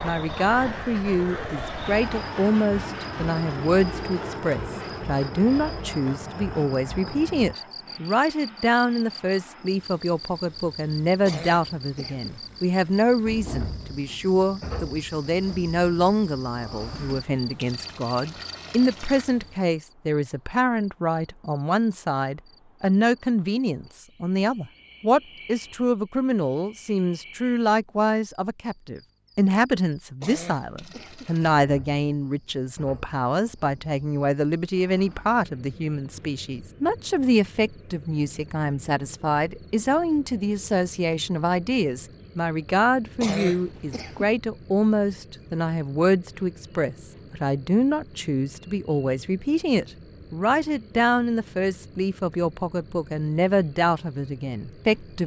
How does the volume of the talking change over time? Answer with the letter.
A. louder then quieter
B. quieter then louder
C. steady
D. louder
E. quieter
C.